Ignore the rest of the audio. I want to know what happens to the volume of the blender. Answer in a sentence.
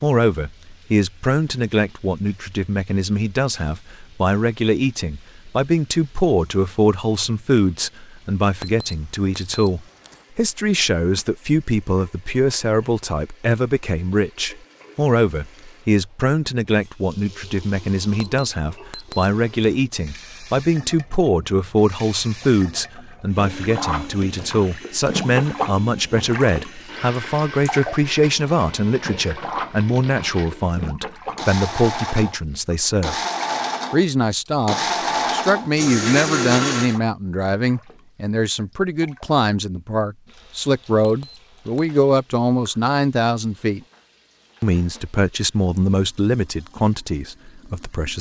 The volume of the blender goes up.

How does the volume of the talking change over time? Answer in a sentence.
The volume of the talking stays about the same.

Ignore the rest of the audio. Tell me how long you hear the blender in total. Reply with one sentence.
The blender can be heard for 14 seconds in total.